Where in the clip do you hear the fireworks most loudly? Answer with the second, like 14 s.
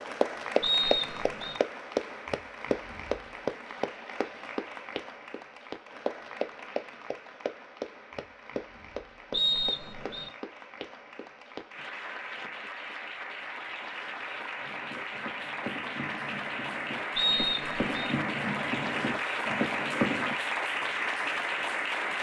20 s.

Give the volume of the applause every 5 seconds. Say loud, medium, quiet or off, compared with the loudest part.
loud, medium, medium, loud, loud.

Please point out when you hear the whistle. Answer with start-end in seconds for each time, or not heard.
0.6-1.6, 9.3-10.3, 17.1-18.1.